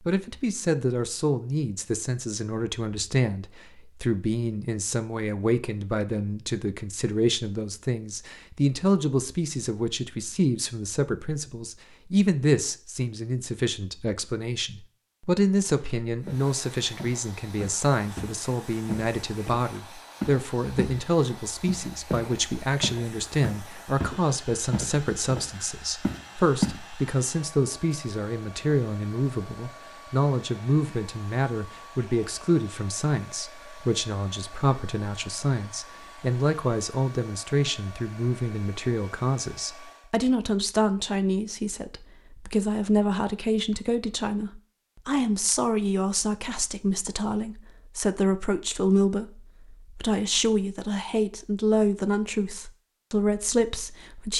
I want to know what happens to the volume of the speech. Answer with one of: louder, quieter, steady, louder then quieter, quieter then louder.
steady.